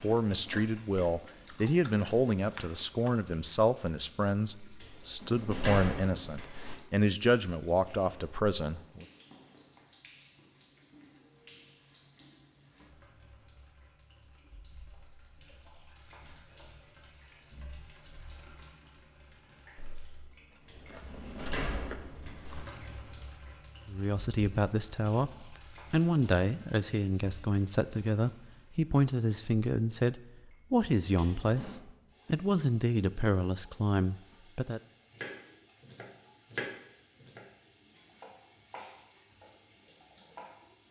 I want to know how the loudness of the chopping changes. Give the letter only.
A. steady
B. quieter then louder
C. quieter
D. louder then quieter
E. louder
D.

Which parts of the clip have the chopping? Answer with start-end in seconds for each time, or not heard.
35.1-40.8.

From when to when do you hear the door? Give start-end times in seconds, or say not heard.
4.8-6.8, 20.6-22.6, 31.1-31.8.